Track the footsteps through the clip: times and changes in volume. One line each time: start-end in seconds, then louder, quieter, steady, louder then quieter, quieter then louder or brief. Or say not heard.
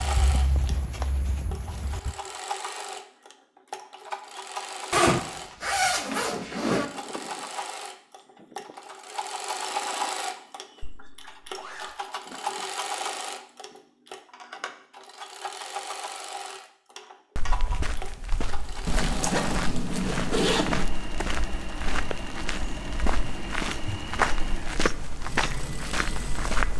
0.0-2.1 brief
17.4-26.7 louder.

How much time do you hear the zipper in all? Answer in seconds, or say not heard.
5 s.